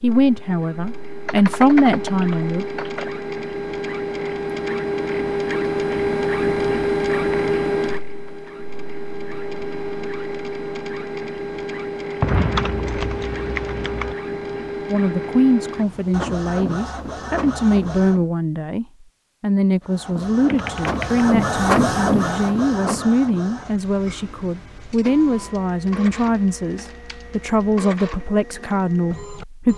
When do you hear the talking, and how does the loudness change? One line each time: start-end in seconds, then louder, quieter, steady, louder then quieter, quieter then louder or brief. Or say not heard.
0.0-2.6 brief
14.9-29.7 steady.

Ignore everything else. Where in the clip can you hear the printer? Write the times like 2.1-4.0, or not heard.
0.0-18.2, 19.8-29.7.